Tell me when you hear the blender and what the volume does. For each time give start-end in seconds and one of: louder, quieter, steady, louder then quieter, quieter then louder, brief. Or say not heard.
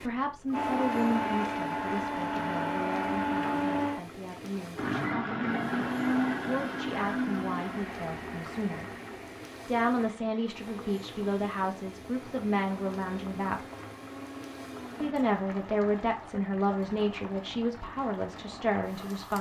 0.1-19.3 quieter.